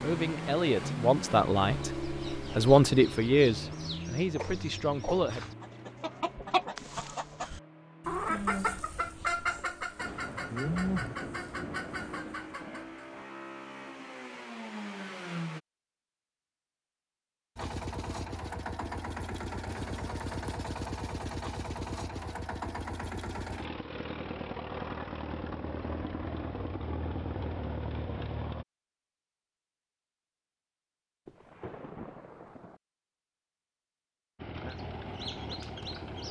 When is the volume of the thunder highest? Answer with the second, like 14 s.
11 s.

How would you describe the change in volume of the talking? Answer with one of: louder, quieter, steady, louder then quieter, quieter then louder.
louder then quieter.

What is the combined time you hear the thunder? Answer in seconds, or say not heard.
5 s.